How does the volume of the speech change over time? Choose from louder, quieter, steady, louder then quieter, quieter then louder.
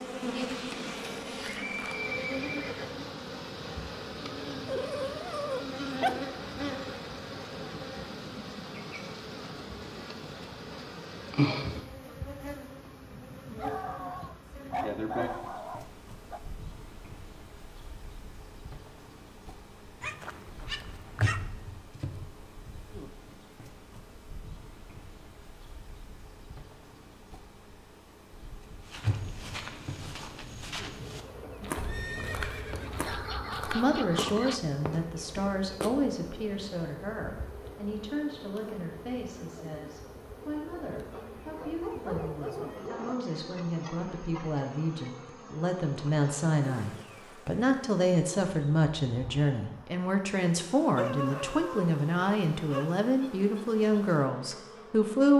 quieter then louder.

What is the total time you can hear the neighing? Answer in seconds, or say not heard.
4 s.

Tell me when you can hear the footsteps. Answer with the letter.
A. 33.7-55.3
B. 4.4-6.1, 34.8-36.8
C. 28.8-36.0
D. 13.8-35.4
C.